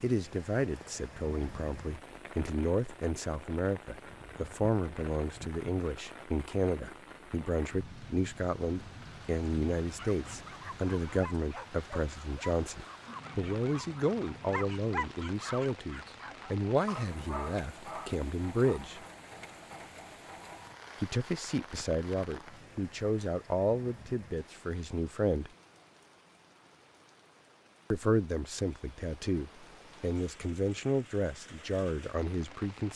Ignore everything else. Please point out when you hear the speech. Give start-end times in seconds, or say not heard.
0.0-19.0, 21.0-25.5, 27.9-32.9.